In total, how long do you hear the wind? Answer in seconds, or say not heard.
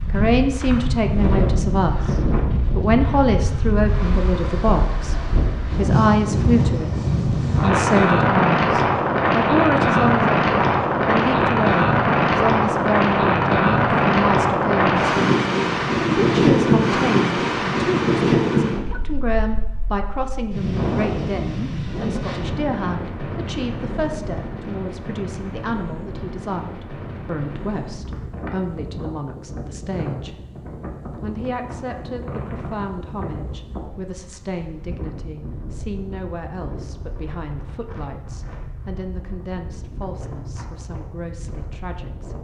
42 s.